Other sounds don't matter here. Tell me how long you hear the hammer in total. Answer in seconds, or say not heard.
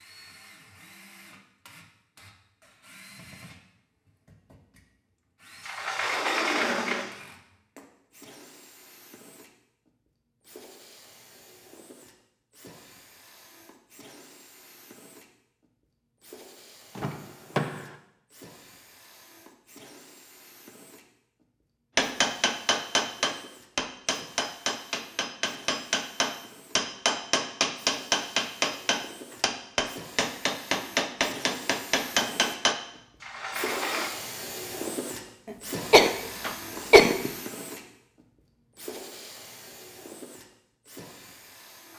11 s.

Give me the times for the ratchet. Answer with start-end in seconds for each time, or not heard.
not heard.